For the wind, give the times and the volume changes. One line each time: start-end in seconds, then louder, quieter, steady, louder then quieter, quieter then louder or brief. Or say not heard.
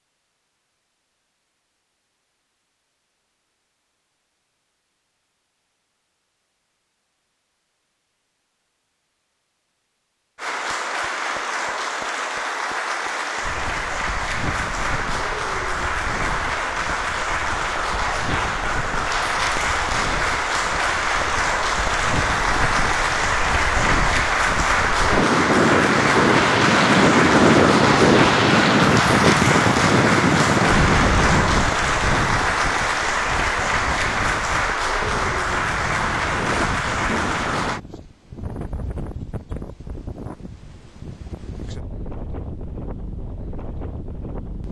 13.4-44.6 louder then quieter.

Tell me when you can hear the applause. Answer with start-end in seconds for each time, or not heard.
10.3-37.8.